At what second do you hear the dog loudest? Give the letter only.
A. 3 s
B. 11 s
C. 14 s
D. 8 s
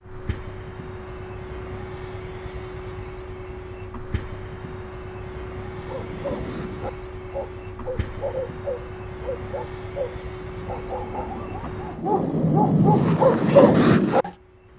C.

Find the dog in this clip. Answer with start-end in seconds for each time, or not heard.
5.7-14.3.